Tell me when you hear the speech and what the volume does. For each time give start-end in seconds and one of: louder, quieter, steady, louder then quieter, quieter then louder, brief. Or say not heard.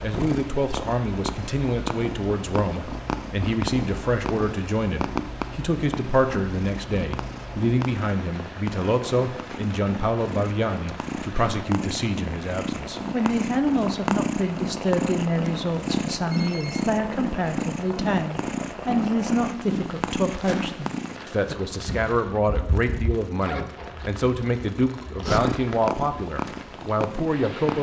0.0-27.7 steady.